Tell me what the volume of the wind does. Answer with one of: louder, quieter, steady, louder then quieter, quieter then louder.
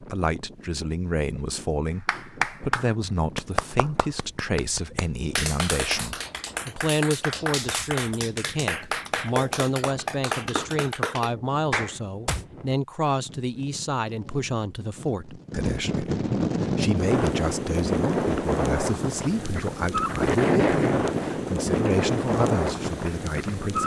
louder.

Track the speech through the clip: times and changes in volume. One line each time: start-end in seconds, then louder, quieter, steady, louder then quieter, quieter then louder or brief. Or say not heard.
0.0-23.8 steady.